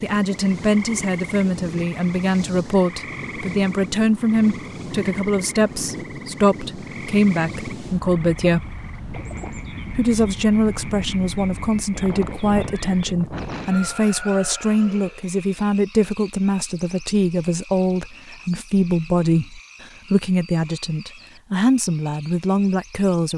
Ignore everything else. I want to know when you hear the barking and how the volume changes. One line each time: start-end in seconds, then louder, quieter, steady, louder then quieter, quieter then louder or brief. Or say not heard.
not heard.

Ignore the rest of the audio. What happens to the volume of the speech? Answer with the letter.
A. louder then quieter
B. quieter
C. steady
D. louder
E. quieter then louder
C.